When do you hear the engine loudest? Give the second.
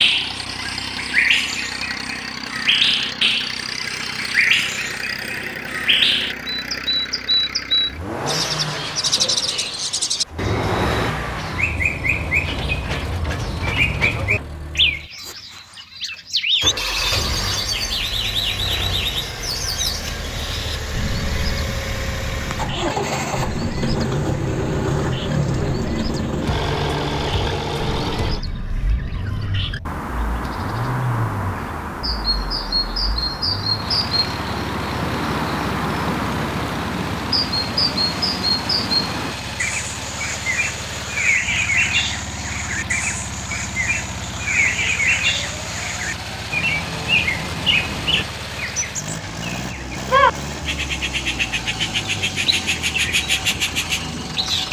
25 s.